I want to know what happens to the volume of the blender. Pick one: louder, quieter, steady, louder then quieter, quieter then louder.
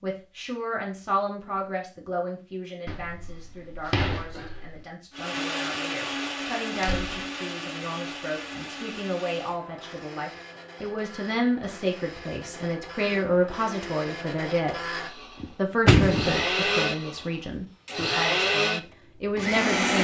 quieter then louder.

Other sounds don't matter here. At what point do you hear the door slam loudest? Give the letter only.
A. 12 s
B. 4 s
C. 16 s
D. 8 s
C.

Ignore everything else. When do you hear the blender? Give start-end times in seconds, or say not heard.
5.1-19.9.